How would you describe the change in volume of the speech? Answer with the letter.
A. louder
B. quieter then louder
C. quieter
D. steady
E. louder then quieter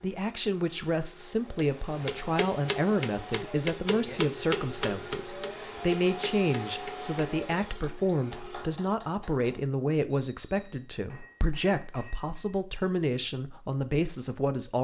D.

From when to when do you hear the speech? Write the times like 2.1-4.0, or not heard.
0.0-14.7.